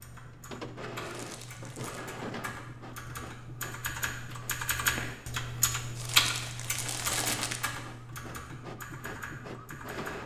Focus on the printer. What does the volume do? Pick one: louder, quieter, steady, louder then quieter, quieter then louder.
quieter then louder.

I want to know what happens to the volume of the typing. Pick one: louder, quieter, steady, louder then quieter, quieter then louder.
louder then quieter.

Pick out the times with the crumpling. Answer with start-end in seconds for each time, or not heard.
1.0-2.0, 6.0-7.6.